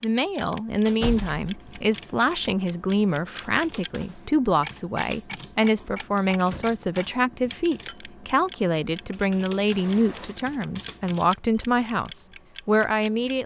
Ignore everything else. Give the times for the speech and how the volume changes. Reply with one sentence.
You can hear the speech from 0.0 to 13.4 s, at a steady volume.